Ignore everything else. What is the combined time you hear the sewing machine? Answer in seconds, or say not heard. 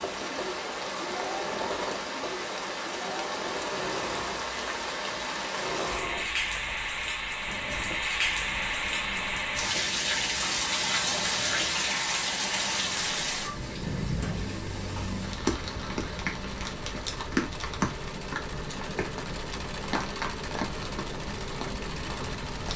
23 s.